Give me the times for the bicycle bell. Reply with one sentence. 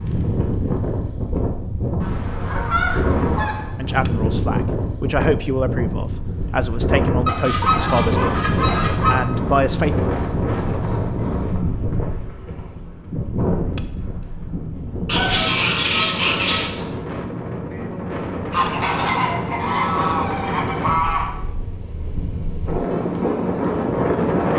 You can hear the bicycle bell from 4.0 to 4.7 s, from 13.8 to 14.4 s and from 18.6 to 19.3 s.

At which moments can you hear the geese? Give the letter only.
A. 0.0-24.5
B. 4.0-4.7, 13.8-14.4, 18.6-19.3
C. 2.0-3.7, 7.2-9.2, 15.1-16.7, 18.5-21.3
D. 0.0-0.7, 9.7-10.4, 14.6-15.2
C.